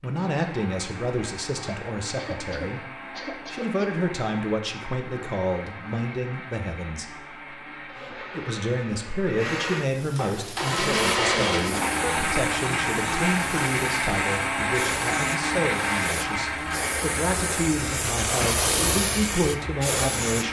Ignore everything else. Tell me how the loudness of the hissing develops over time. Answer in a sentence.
The loudness of the hissing goes up.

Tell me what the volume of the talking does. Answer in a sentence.
The volume of the talking stays about the same.